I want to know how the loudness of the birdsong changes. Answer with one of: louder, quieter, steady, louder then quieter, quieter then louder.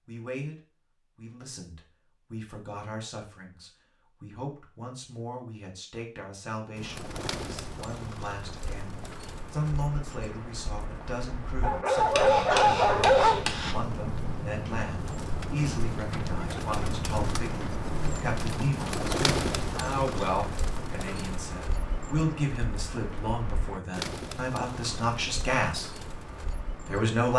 louder then quieter.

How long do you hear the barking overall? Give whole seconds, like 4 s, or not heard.
2 s.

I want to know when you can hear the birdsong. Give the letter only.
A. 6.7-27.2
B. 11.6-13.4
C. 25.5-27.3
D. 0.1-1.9
A.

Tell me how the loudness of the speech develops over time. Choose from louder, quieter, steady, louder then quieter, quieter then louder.
louder.